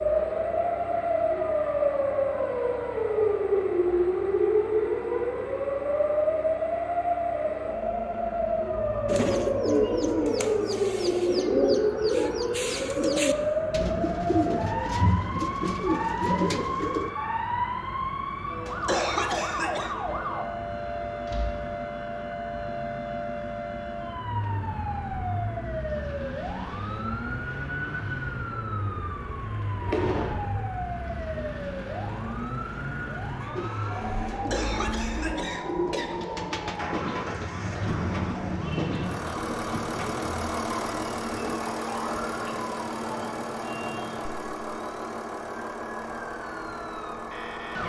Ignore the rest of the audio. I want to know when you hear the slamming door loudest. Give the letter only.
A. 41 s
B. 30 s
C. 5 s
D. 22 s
B.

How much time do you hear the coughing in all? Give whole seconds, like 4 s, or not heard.
3 s.